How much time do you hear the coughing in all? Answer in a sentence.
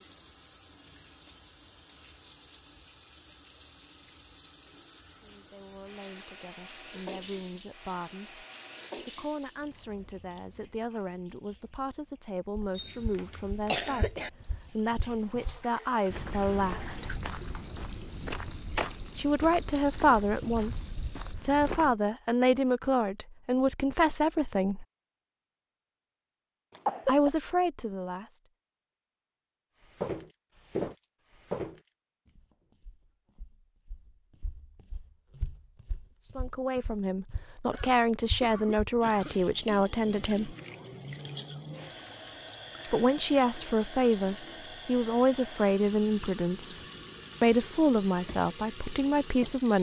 The coughing can be heard for 4 seconds in total.